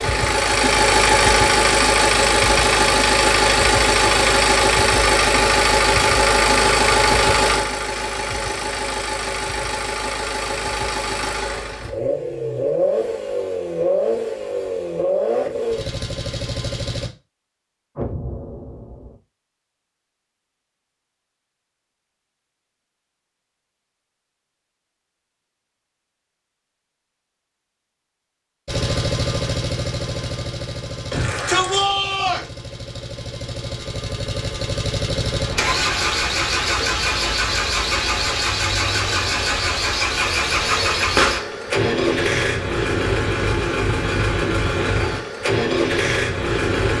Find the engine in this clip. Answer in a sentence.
The engine can be heard from 0.0 to 17.1 s and from 28.6 to 46.9 s.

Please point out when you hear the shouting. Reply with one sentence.
You can hear the shouting from 31.1 to 32.5 s.